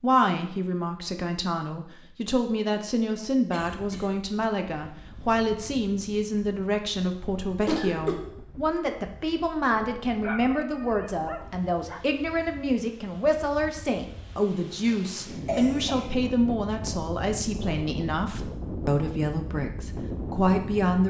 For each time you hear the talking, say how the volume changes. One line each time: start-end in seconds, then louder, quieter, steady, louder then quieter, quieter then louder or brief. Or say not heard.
0.0-21.0 steady.